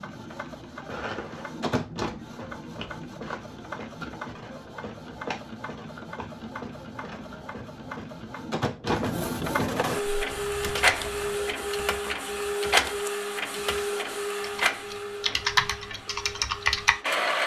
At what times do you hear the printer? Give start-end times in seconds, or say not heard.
0.0-17.4.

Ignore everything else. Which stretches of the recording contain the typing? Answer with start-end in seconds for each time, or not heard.
9.9-16.9.